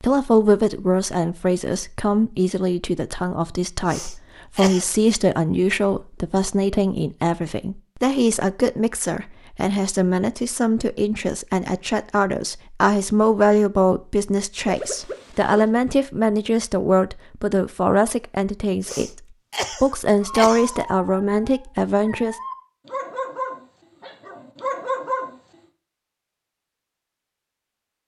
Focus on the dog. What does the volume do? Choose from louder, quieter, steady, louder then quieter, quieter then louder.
louder.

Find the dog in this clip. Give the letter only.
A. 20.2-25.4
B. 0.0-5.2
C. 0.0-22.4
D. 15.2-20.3
A.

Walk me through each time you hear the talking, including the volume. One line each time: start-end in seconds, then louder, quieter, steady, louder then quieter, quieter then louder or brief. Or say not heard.
0.0-22.4 steady.